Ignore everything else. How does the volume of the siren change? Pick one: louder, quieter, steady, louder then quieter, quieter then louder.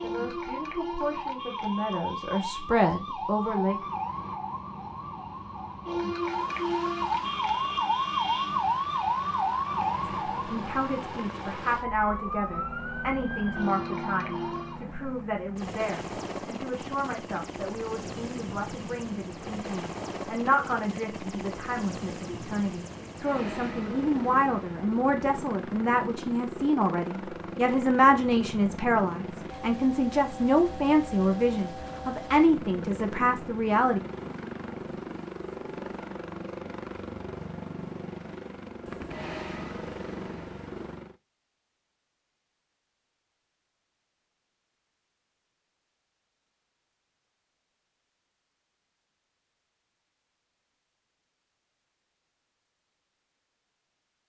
louder then quieter.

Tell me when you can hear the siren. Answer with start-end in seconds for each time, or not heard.
0.0-14.8.